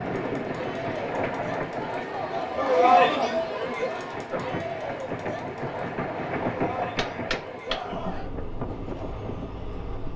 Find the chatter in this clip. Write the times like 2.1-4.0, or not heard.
0.0-8.4.